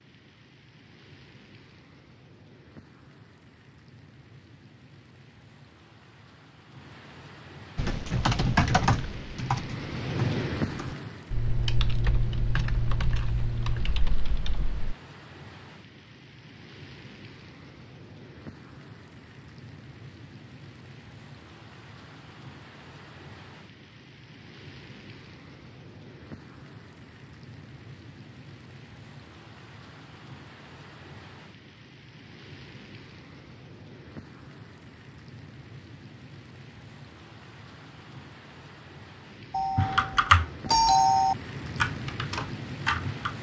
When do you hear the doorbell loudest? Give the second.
41 s.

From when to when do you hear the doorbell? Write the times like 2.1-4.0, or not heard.
39.5-41.4.